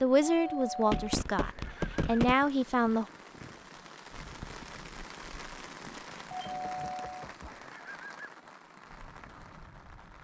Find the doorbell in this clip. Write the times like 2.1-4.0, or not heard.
0.2-2.1, 6.3-8.3.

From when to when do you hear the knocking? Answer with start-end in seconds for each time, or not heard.
0.8-2.5, 6.3-7.5.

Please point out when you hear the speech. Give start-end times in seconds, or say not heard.
0.0-3.0.